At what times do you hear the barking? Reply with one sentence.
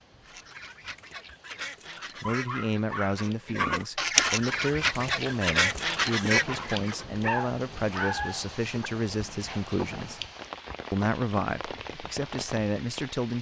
The barking can be heard from 2.0 to 3.9 s and from 7.1 to 8.9 s.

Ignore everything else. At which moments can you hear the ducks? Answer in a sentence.
The ducks can be heard from 0.2 to 7.0 s.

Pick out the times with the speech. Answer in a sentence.
The speech can be heard from 2.2 to 10.2 s and from 10.9 to 13.3 s.